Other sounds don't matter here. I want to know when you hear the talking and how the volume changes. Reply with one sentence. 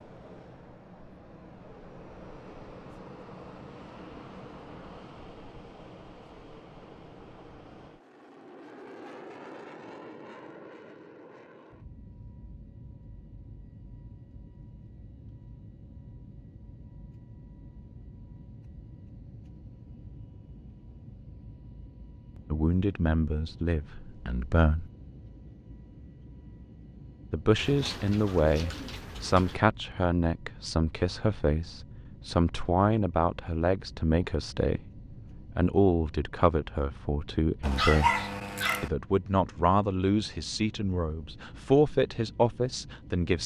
You can hear the talking briefly from 22.5 to 24.9 s; and from 27.3 to 43.4 s, at a steady volume.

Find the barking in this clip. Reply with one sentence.
You can hear the barking from 37.6 to 38.9 s.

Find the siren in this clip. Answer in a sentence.
You can't hear the siren here.